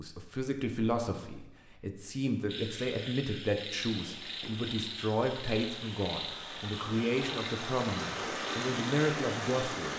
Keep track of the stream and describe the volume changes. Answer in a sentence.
The loudness of the stream goes up.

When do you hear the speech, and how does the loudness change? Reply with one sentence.
You can hear the speech from 0.0 to 9.9 s, at a steady volume.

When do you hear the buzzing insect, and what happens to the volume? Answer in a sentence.
The buzzing insect can't be heard in this clip.